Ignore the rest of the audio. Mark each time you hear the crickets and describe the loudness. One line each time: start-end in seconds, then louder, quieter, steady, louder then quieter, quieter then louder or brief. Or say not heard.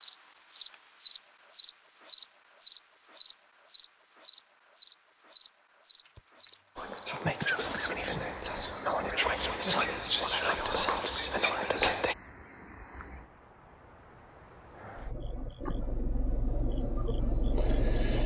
0.0-18.2 quieter then louder.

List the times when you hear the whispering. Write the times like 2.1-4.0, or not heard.
6.8-12.2.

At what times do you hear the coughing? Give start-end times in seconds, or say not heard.
6.0-6.5, 7.4-8.0.